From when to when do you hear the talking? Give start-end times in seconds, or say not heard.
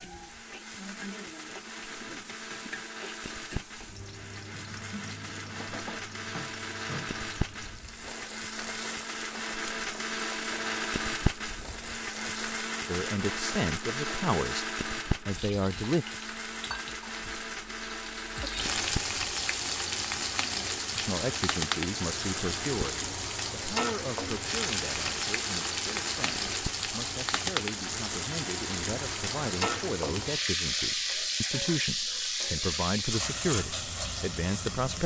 12.8-16.1, 20.9-35.0.